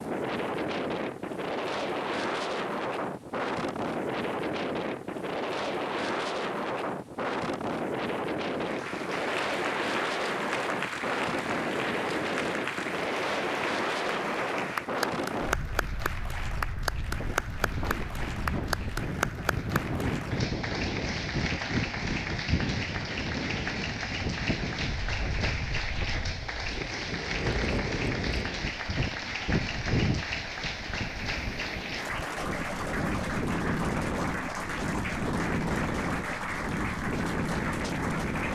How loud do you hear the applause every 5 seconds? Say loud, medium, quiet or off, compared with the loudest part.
off, loud, loud, loud, loud, loud, loud, loud.